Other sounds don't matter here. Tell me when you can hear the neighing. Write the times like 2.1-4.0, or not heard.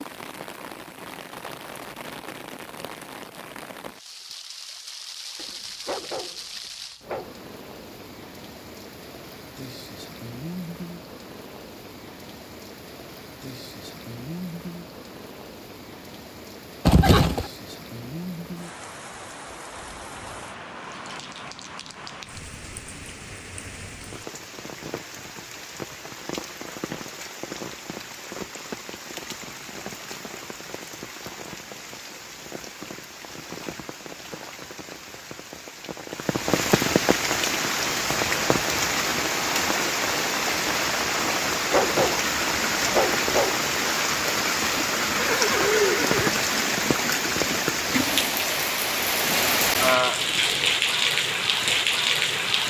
16.9-17.4, 45.0-46.3.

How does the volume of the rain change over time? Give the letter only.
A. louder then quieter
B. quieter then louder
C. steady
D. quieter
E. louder
E.